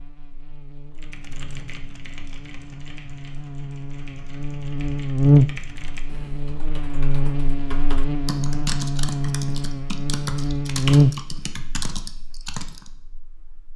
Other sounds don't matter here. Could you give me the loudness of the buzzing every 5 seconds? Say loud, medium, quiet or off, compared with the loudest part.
quiet, loud, loud.